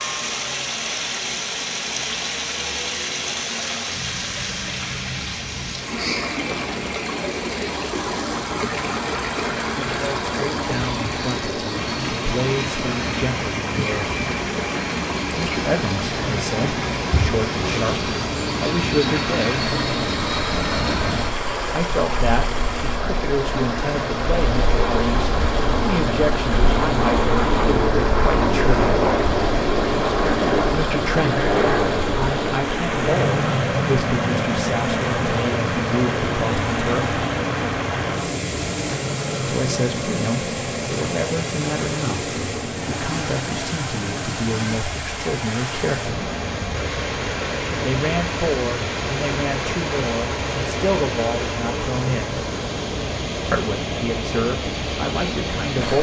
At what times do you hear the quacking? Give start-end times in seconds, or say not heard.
not heard.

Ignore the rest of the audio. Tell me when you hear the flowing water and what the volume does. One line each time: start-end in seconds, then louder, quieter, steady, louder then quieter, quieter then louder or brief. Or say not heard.
0.0-55.9 steady.